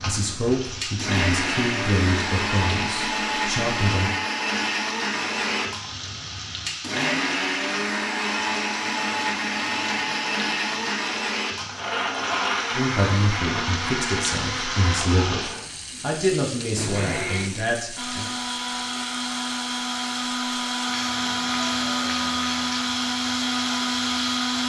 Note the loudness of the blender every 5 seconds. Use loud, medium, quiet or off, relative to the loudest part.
loud, loud, loud, medium, loud.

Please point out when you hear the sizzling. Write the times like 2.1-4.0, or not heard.
0.0-24.6.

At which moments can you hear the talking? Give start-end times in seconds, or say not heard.
0.1-4.1, 12.8-18.2.